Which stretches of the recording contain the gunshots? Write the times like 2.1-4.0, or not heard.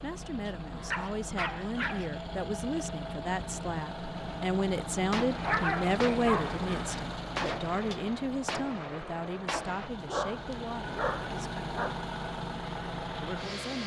5.1-9.9.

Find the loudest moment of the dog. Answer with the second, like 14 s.
6 s.